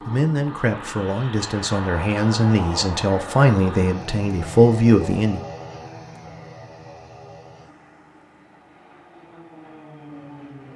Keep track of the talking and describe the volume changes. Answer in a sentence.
The volume of the talking goes up.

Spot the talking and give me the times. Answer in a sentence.
You can hear the talking from 0.1 to 5.5 s.